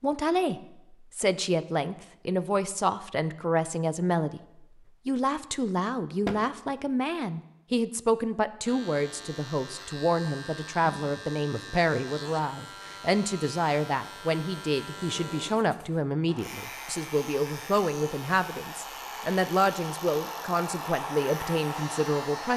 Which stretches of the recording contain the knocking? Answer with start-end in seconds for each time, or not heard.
6.2-6.8.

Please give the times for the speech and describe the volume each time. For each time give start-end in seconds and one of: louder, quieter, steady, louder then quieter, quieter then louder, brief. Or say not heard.
0.0-4.4 steady
5.0-22.5 steady.